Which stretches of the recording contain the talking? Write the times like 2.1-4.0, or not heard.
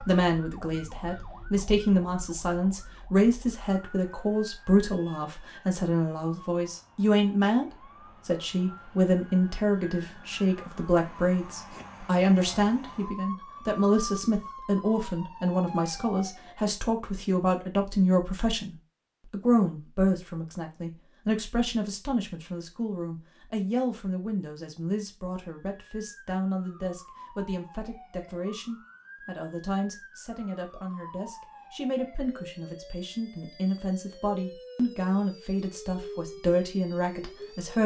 0.1-37.8.